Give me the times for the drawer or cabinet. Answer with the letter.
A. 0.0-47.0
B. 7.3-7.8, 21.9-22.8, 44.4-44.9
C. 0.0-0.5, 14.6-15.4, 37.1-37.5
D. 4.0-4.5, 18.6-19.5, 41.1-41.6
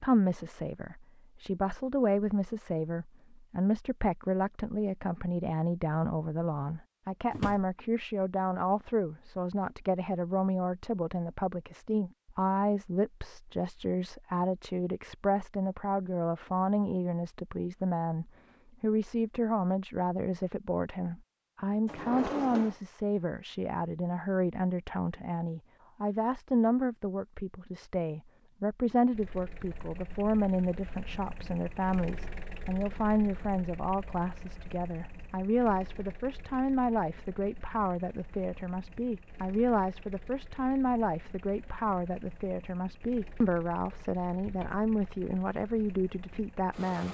B.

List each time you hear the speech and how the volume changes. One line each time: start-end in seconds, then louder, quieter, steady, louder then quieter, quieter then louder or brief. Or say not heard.
0.0-47.0 steady.